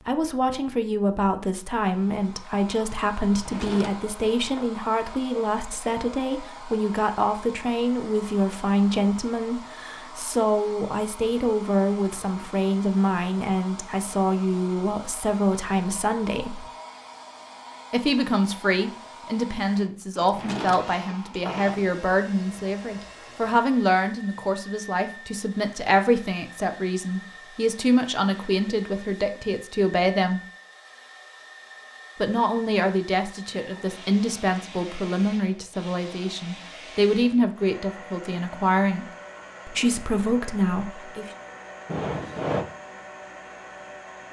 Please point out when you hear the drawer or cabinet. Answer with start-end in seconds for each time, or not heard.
3.3-4.7, 20.2-21.9, 41.9-42.6.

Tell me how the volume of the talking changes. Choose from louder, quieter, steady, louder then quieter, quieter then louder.
steady.